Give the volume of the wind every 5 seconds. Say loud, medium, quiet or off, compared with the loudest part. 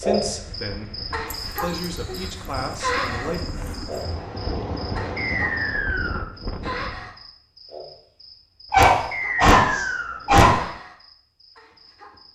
loud, loud, off.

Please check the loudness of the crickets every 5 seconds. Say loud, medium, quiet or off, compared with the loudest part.
loud, medium, quiet.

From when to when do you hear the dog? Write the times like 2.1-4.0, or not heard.
1.2-4.0, 8.7-10.6.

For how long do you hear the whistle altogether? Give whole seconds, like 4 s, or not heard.
3 s.